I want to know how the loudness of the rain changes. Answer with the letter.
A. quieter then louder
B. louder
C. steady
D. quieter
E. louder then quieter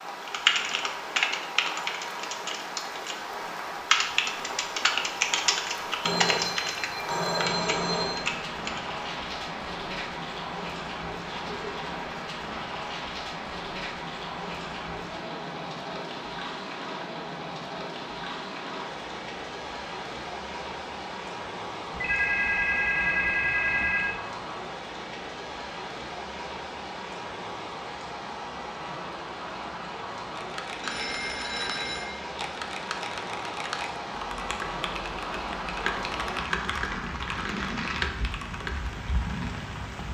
C.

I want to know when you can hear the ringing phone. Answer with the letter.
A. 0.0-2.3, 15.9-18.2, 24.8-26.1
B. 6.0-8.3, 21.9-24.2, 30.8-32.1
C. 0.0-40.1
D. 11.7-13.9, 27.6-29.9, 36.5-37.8
B.